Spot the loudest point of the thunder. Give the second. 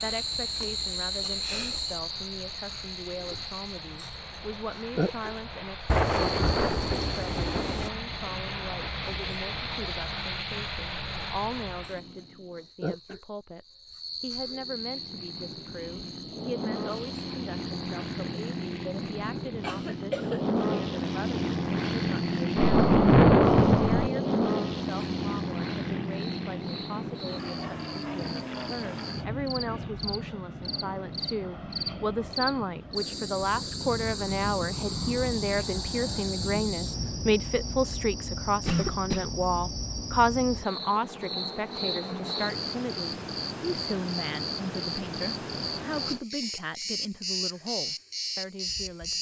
23 s.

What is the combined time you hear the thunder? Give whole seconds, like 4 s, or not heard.
8 s.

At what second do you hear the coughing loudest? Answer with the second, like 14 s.
39 s.